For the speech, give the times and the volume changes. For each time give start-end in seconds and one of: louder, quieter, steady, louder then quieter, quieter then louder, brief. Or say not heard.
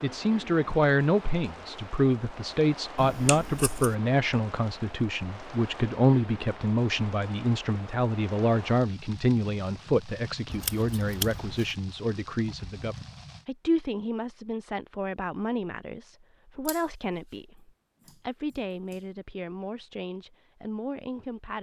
0.0-21.5 quieter.